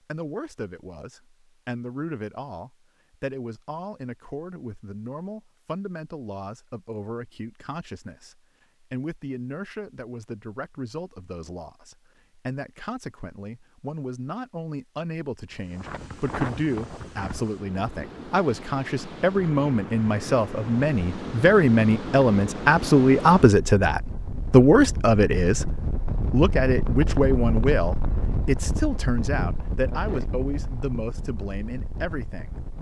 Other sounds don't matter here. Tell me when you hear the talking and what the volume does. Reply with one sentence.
The talking can be heard from 0.1 to 32.6 s, getting louder then quieter.